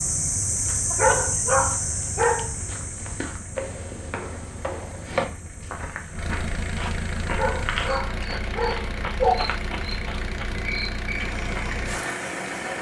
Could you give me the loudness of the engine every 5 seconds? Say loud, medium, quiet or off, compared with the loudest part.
quiet, loud, loud.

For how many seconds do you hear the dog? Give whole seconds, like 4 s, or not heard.
3 s.